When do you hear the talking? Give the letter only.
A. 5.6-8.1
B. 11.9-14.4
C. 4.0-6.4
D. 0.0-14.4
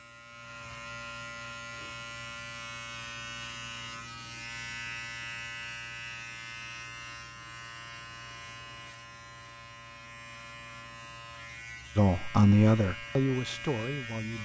B.